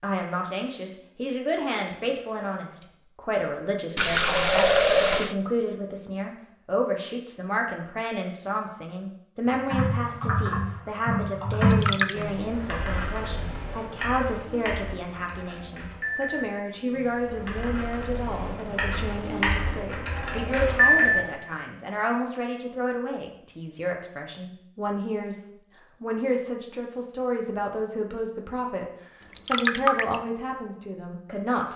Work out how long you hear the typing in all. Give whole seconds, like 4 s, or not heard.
12 s.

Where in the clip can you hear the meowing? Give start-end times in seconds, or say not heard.
not heard.